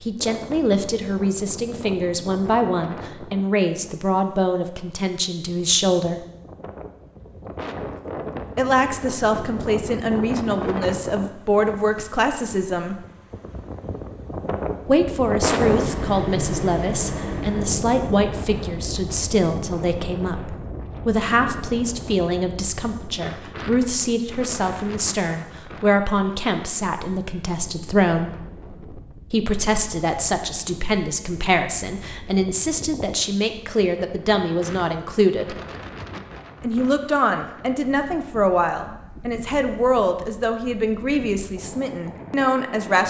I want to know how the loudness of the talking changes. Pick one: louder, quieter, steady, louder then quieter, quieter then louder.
steady.